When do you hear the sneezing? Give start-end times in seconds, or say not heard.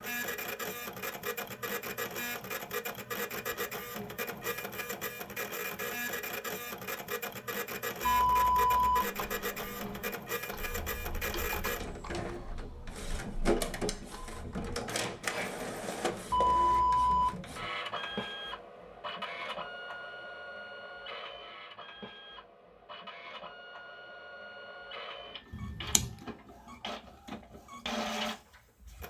not heard.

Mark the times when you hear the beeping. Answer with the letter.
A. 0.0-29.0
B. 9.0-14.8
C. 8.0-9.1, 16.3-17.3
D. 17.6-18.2
C.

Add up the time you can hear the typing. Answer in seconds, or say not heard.
6 s.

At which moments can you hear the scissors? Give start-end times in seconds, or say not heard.
25.5-26.2.